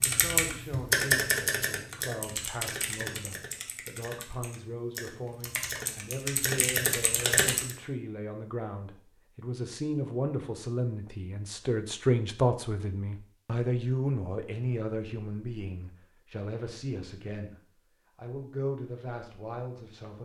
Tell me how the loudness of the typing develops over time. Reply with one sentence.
The volume of the typing goes down, then up.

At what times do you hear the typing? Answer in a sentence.
The typing can be heard from 0.0 to 7.8 s.